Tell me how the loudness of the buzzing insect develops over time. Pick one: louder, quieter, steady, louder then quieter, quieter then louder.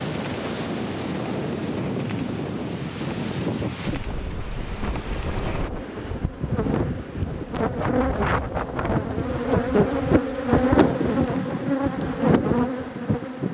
louder.